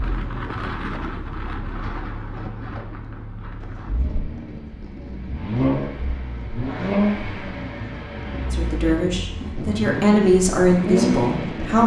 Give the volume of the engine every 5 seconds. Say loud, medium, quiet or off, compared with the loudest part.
quiet, loud, loud.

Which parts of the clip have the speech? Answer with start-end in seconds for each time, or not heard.
8.5-11.8.